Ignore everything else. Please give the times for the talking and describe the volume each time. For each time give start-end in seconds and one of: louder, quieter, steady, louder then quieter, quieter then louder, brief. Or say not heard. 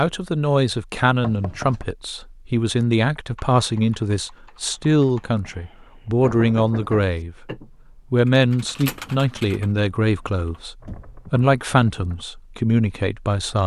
0.0-13.6 steady.